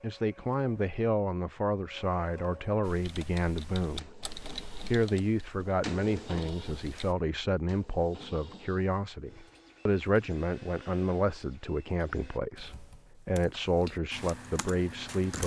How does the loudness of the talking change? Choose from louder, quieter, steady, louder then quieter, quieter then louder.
steady.